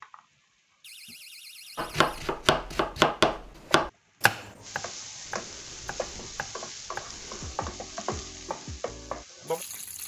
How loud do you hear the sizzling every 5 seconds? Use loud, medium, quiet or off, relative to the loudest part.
medium, loud.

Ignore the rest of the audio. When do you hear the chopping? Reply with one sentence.
You can hear the chopping from 1.8 to 9.2 s.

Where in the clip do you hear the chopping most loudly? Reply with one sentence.
The volume of the chopping peaks at 3 seconds.